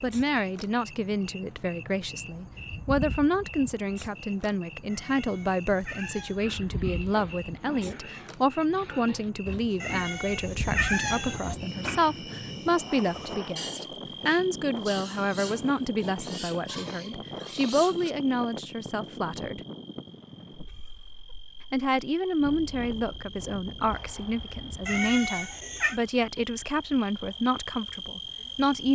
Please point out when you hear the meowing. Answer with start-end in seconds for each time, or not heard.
4.9-6.4, 9.8-11.6, 24.9-26.0.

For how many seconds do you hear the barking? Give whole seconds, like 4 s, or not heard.
not heard.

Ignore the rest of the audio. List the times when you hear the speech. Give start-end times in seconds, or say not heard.
0.0-19.6, 21.7-28.9.